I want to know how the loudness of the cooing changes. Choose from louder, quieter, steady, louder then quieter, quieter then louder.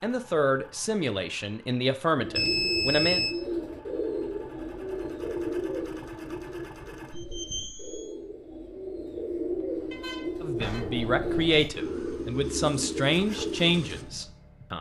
quieter then louder.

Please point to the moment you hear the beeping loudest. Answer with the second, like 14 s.
3 s.